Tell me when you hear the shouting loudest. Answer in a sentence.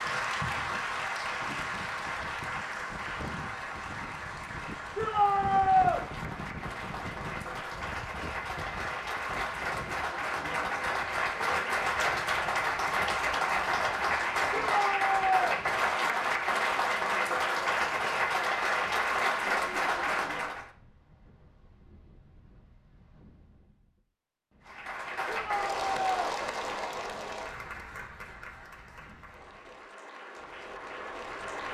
The loudest moment of the shouting is at 6 seconds.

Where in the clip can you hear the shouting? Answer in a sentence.
You can hear the shouting from 5.0 to 6.0 s, from 14.5 to 15.6 s and from 25.2 to 26.1 s.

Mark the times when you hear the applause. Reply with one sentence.
The applause can be heard from 0.0 to 20.7 s and from 24.6 to 31.6 s.